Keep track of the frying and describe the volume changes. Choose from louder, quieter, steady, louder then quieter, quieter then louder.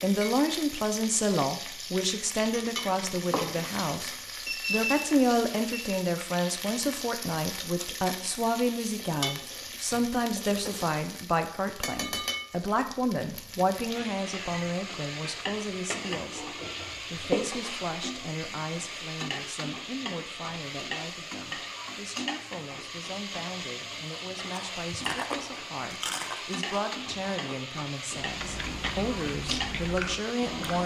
steady.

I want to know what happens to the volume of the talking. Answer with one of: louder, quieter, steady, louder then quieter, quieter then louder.
quieter then louder.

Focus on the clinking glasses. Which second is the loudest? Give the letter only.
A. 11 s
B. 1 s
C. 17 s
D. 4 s
C.